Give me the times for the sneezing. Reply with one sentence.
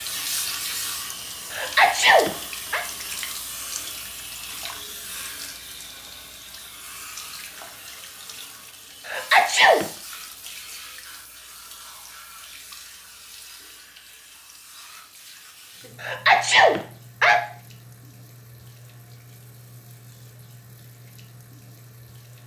The sneezing can be heard from 1.5 to 2.8 s, from 9.1 to 9.8 s and from 16.0 to 17.4 s.